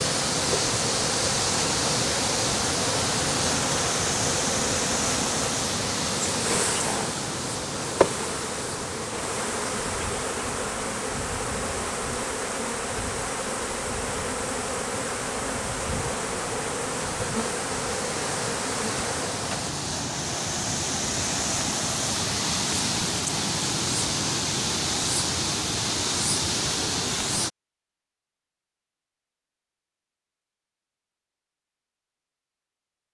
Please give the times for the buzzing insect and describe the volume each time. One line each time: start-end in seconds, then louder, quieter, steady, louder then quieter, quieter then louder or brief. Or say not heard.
0.0-19.7 steady.